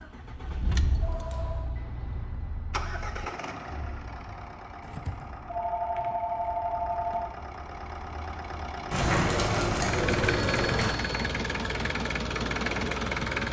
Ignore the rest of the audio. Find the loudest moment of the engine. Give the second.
13 s.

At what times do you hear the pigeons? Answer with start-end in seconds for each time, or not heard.
8.9-10.9.